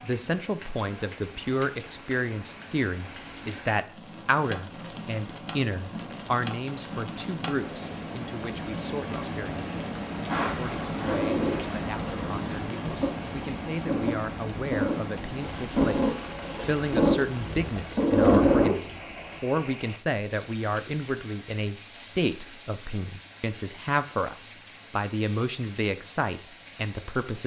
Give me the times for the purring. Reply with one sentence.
You can hear the purring from 10.2 to 18.9 s.